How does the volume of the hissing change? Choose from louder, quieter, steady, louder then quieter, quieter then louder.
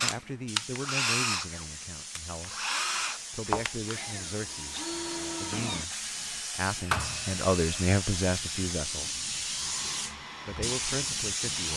louder.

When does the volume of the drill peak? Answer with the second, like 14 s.
1 s.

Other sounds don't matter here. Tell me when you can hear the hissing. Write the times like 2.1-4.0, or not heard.
0.1-11.7.